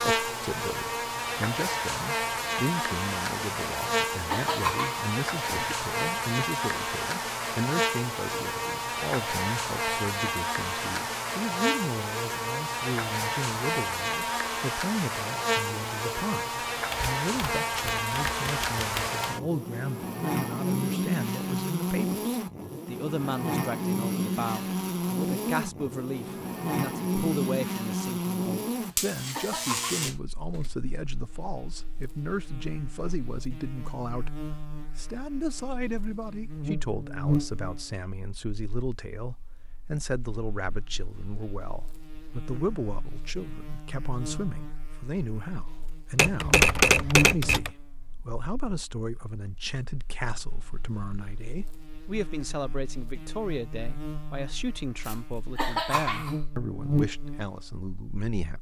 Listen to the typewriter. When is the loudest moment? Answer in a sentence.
The loudest moment of the typewriter is at 47 seconds.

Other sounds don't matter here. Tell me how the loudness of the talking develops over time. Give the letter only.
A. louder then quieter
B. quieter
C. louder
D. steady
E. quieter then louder
D.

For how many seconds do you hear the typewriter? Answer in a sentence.
The typewriter can be heard for 4 seconds in total.